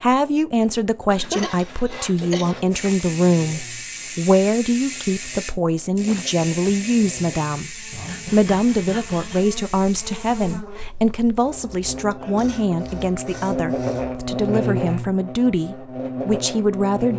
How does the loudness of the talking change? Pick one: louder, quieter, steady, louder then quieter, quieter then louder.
steady.